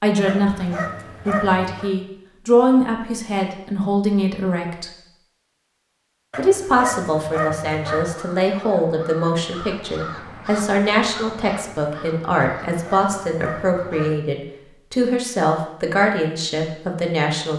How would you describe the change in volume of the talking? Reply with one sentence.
The loudness of the talking stays about the same.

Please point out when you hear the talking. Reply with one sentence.
You can hear the talking from 0.0 to 4.9 s and from 6.3 to 17.5 s.